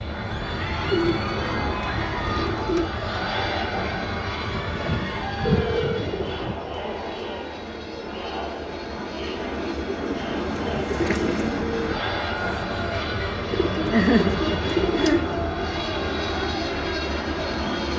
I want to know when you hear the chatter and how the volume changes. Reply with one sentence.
The chatter can be heard from 0.1 to 17.9 s, at a steady volume.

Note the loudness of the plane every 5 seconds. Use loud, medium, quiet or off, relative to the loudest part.
loud, medium, loud, loud.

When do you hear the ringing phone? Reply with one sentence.
The ringing phone can be heard from 5.5 to 6.0 s.